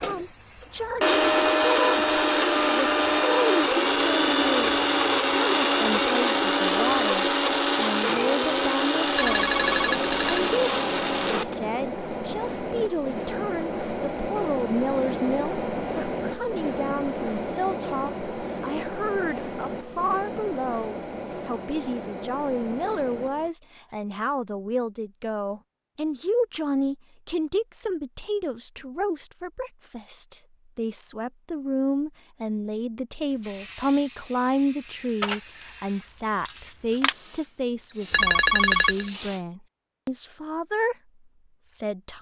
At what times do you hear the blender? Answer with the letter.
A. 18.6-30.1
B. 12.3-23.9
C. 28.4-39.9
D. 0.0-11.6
D.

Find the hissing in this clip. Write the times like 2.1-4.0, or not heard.
0.0-23.5, 33.3-39.5.